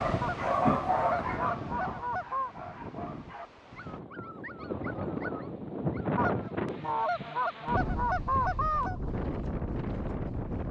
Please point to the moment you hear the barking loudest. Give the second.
1 s.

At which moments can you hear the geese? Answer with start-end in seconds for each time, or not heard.
0.2-2.5, 6.2-9.0.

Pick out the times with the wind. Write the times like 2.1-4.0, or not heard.
0.0-10.6.